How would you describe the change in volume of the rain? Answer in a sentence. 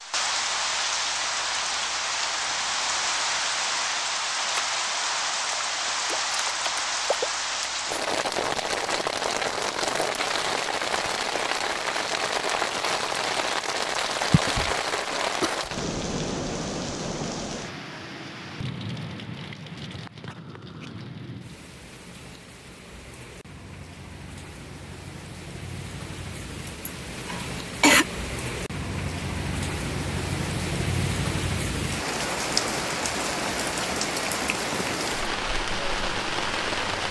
The volume of the rain goes down, then up.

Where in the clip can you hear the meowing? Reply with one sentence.
The meowing can't be heard in this clip.